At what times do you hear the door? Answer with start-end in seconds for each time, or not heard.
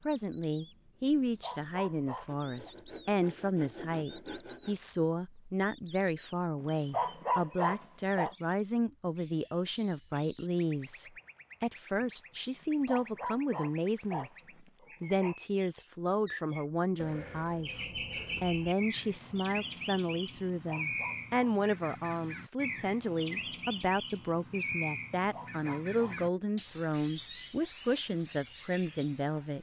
not heard.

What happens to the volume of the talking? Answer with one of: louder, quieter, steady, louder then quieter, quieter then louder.
steady.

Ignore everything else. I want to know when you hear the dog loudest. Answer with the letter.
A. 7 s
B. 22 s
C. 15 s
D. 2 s
A.